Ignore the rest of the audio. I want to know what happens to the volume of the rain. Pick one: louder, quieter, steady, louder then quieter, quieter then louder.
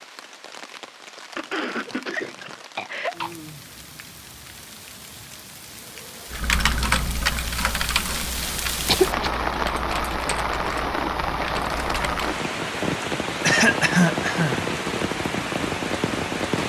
louder.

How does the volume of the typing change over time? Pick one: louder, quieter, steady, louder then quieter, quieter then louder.
quieter.